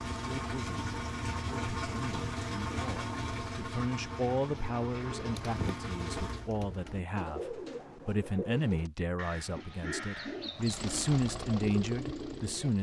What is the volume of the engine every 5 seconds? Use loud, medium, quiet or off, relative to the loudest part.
loud, loud, medium.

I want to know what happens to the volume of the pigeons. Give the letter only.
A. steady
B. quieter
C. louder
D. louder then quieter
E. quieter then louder
A.